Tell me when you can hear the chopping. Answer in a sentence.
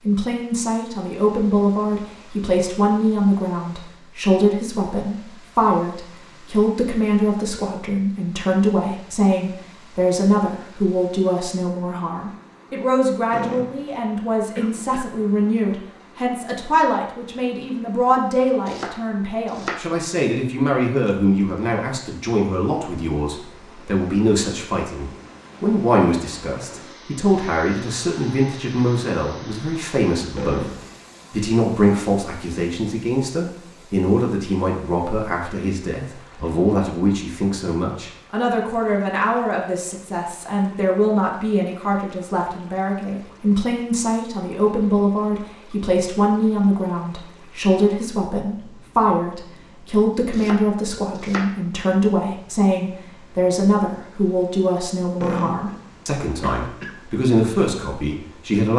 You can hear the chopping from 18.6 to 19.9 s and from 50.1 to 51.6 s.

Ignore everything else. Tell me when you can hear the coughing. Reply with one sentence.
The coughing can be heard from 13.3 to 15.1 s, from 30.4 to 30.9 s and from 55.2 to 57.0 s.